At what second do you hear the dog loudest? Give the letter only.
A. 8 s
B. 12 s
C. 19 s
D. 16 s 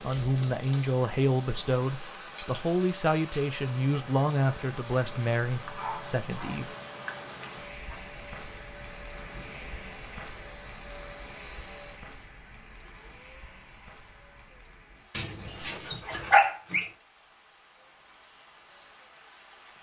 D.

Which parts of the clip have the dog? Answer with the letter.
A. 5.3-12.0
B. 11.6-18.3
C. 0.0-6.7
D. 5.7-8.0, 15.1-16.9
D.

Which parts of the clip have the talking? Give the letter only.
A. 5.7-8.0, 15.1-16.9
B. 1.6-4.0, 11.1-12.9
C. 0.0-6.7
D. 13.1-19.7
C.